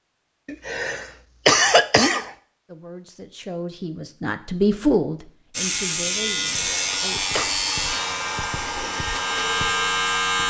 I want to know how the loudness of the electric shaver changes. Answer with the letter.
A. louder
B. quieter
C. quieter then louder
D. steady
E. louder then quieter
C.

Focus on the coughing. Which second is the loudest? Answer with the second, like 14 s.
2 s.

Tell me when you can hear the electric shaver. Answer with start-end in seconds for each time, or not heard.
5.5-10.4.